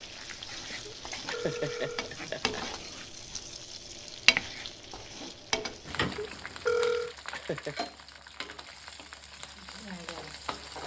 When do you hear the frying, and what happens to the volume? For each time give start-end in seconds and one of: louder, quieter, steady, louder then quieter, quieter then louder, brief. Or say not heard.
0.0-10.8 louder then quieter.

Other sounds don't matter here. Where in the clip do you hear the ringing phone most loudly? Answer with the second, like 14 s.
7 s.